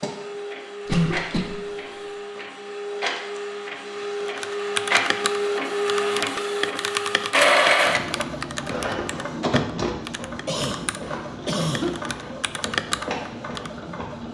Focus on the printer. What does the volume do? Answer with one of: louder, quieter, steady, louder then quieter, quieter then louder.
louder then quieter.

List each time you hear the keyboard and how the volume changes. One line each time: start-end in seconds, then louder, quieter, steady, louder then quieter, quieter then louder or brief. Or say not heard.
4.2-13.7 quieter then louder.